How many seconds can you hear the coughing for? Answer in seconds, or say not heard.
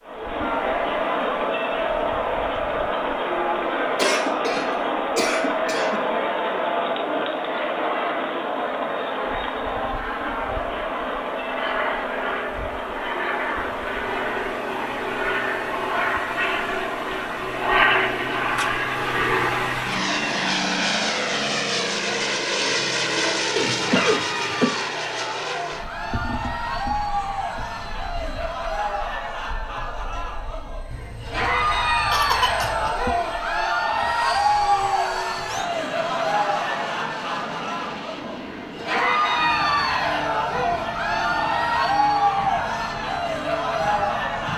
5 s.